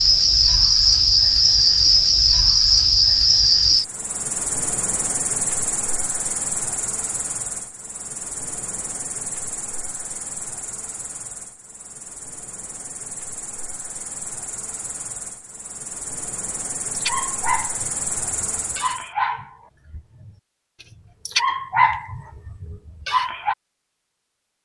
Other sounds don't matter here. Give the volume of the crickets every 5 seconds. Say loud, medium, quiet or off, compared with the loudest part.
loud, quiet, quiet, quiet, off.